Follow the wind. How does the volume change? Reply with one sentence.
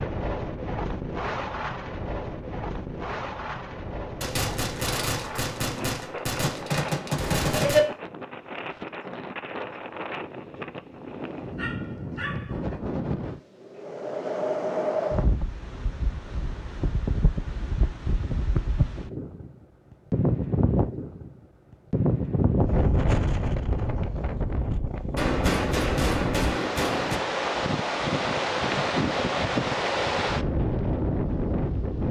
The volume of the wind goes up.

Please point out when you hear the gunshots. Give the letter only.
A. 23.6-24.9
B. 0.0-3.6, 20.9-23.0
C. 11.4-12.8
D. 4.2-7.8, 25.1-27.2
D.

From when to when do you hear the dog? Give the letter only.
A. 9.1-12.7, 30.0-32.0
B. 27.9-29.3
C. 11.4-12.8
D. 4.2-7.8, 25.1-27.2
C.